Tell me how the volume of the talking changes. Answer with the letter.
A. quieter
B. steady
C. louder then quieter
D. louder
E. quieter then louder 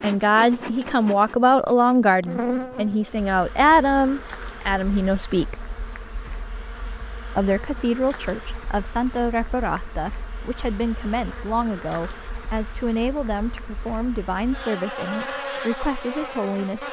A.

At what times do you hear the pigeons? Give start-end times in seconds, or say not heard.
not heard.